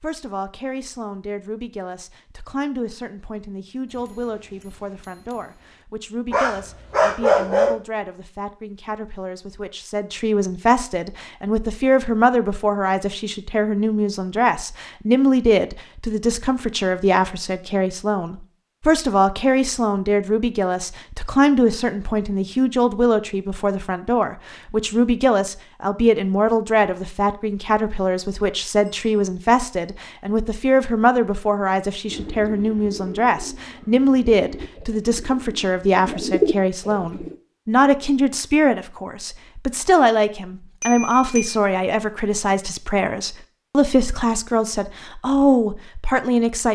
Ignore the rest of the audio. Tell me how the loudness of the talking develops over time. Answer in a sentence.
The loudness of the talking goes up.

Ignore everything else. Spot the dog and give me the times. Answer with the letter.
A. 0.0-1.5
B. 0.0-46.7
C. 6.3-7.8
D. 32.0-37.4
C.